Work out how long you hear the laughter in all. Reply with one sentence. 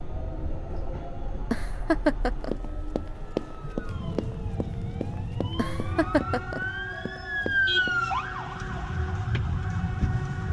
You can hear the laughter for 2 seconds altogether.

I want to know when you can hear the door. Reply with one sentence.
The door can't be heard in this clip.